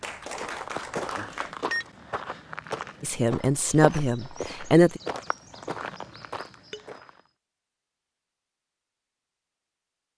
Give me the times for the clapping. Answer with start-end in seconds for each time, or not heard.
0.0-1.6.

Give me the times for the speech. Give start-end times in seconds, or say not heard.
3.0-5.0.